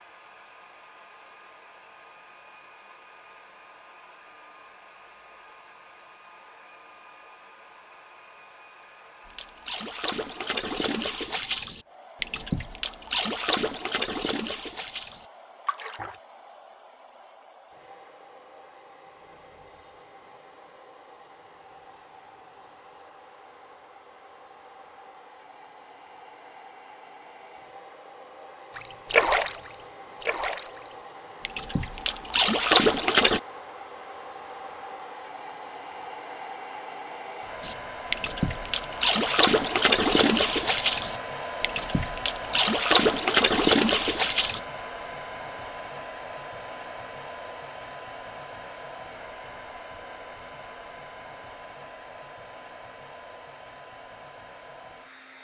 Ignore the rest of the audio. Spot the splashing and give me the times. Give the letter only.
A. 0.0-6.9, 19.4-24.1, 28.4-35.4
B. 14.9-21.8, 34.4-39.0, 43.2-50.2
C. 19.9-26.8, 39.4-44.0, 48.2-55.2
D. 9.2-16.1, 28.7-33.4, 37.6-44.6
D.